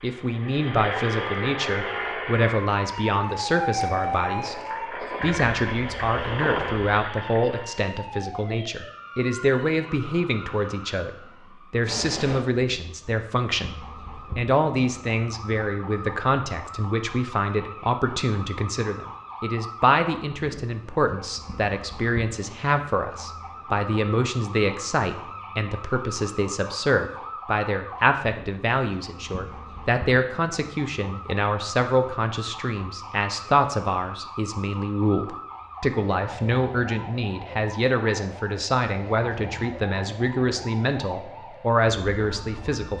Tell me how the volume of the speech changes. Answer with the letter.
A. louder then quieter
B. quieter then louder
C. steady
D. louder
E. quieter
C.